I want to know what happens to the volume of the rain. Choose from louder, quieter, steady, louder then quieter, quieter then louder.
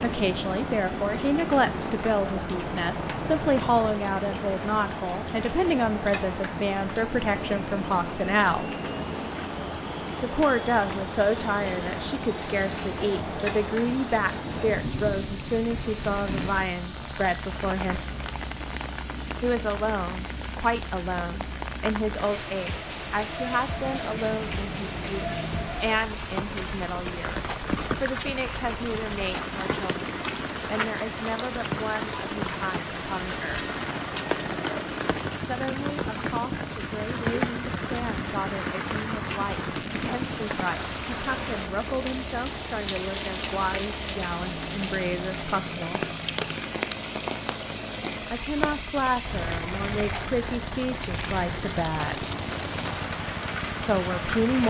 steady.